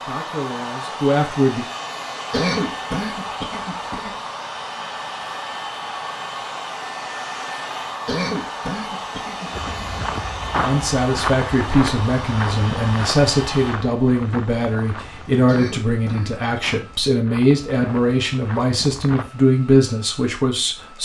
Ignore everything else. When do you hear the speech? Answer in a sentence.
The speech can be heard from 0.1 to 1.6 s and from 10.6 to 21.0 s.